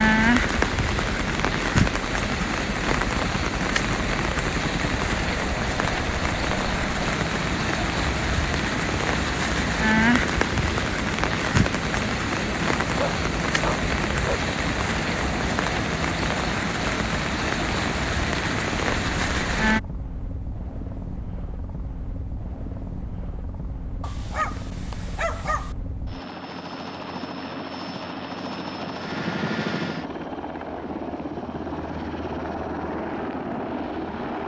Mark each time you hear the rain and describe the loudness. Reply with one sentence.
You can hear the rain from 0.0 to 19.8 s, at a steady volume.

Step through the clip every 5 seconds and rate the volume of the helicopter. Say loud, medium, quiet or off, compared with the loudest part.
loud, loud, loud, loud, medium, loud, loud.